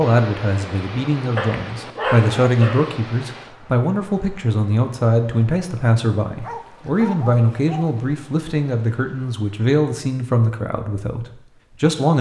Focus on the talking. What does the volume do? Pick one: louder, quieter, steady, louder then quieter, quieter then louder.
steady.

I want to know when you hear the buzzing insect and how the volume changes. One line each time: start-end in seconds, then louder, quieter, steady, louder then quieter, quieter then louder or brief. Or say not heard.
not heard.